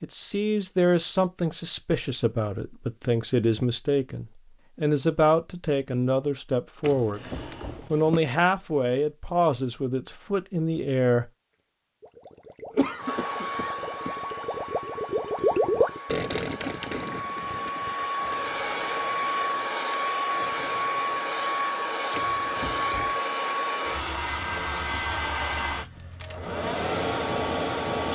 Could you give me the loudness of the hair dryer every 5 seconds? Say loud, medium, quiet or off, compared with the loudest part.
off, off, medium, loud, loud, loud.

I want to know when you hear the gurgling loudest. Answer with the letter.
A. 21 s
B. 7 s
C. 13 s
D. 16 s
D.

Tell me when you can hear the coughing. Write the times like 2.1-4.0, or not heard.
12.7-14.2.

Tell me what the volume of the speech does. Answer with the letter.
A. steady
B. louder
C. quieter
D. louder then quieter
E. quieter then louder
A.